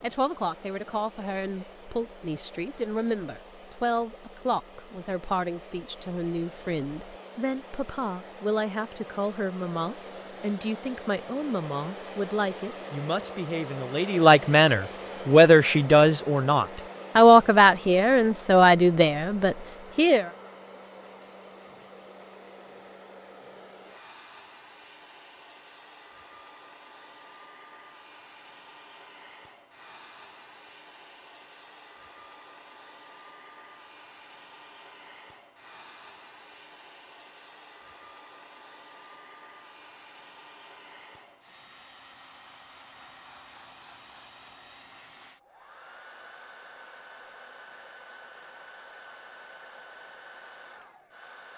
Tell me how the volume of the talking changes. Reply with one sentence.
The volume of the talking goes up.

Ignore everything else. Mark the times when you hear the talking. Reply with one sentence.
You can hear the talking from 0.0 to 20.3 s.